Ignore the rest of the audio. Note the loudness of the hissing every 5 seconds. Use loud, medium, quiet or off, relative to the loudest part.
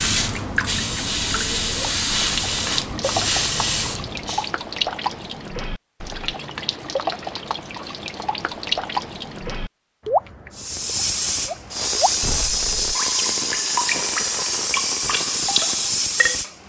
loud, off, loud, loud.